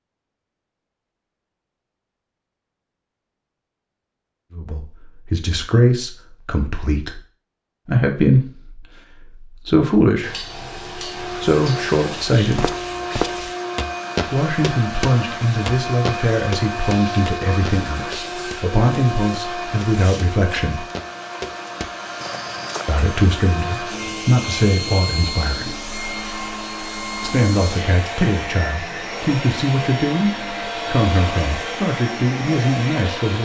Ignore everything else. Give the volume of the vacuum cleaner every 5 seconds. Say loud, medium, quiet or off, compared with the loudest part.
off, off, loud, loud, loud, loud, loud.